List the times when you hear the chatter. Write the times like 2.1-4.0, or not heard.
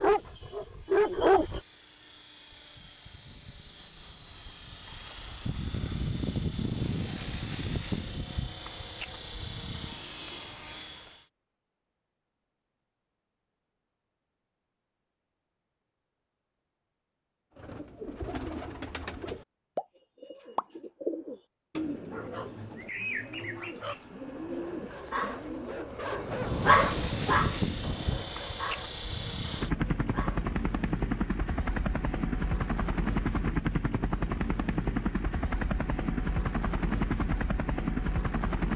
not heard.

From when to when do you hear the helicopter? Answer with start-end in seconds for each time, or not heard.
0.0-11.2, 26.2-38.7.